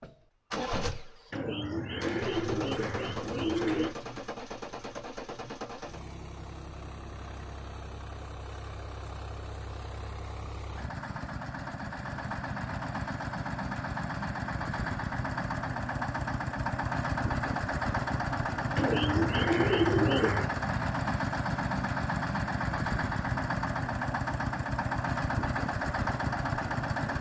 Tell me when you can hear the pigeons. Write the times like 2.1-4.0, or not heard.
1.3-4.0, 18.8-20.5.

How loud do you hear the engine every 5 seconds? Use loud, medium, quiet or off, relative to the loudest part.
medium, quiet, medium, loud, loud, loud.